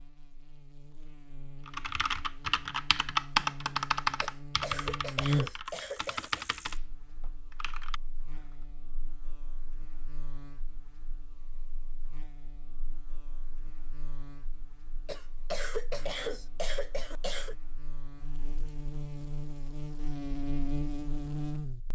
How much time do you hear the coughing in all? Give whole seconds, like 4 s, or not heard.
5 s.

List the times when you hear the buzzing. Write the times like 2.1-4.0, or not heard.
0.0-21.8.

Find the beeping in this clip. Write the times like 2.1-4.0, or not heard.
not heard.